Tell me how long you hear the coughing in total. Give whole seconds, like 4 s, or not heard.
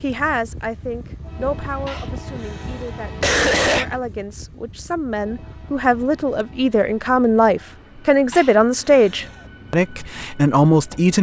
3 s.